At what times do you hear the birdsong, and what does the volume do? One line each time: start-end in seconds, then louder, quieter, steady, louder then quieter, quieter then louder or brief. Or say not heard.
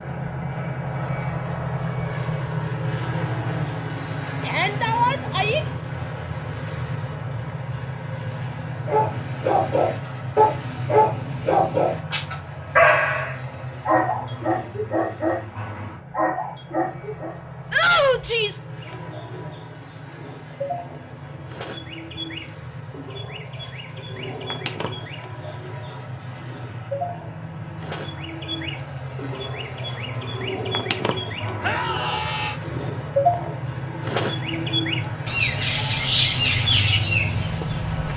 18.8-38.1 louder.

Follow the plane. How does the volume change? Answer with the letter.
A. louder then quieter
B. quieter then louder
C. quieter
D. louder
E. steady
B.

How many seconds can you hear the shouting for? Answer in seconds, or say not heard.
3 s.